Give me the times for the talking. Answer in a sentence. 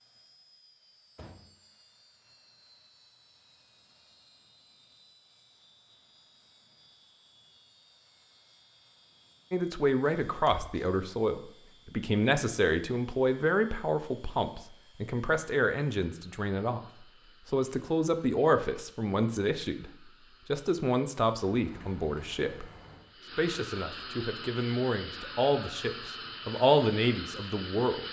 The talking can be heard from 9.5 to 16.8 s, from 17.4 to 22.6 s and from 23.4 to 28.0 s.